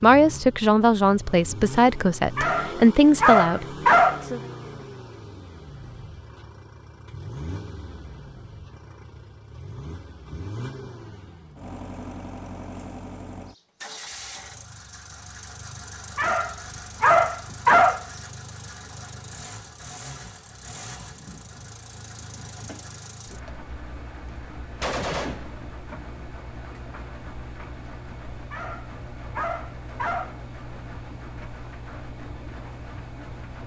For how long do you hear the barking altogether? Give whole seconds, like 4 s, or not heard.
6 s.